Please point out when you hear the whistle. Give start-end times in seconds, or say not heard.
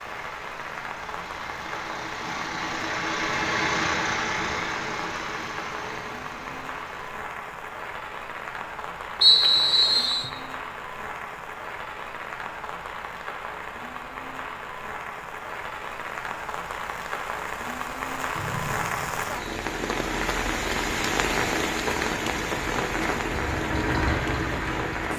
9.2-10.3, 18.4-19.5.